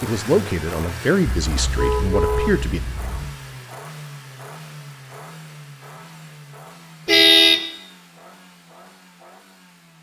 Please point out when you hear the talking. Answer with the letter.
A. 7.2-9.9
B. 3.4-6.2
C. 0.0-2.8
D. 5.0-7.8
C.